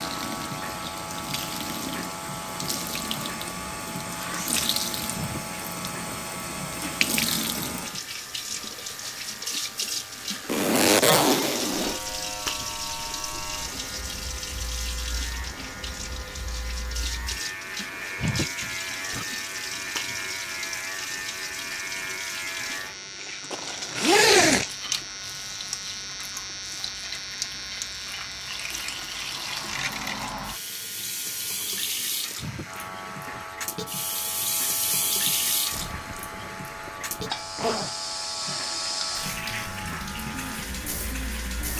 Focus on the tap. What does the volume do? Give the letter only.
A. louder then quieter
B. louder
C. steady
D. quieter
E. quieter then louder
C.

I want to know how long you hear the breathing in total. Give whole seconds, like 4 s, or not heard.
not heard.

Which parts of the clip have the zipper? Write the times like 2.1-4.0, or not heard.
10.4-12.0, 23.5-24.6, 35.7-37.9.